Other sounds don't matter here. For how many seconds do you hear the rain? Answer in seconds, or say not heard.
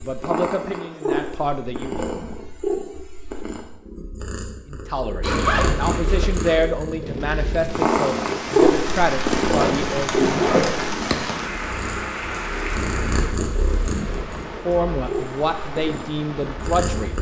10 s.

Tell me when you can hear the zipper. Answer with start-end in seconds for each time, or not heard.
5.2-6.6, 9.6-10.8.